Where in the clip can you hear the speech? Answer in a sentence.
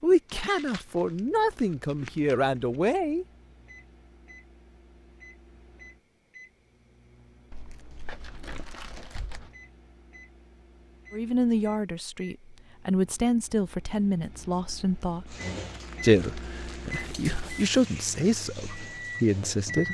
You can hear the speech from 0.0 to 3.2 s, from 11.1 to 15.3 s and from 16.0 to 19.9 s.